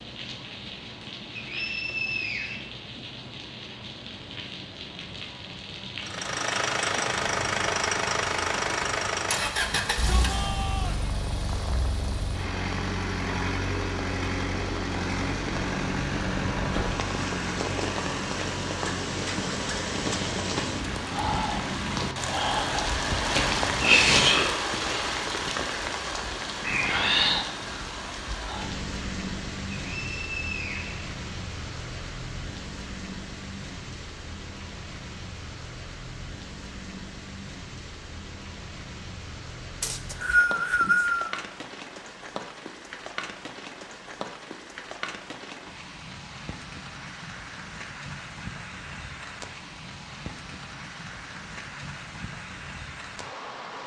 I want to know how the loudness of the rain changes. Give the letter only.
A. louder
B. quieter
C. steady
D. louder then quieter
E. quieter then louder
D.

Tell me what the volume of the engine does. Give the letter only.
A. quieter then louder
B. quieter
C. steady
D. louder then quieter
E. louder
B.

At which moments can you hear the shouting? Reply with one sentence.
You can hear the shouting from 9.7 to 11.1 s.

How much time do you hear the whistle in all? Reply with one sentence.
The whistle can be heard for 4 seconds in total.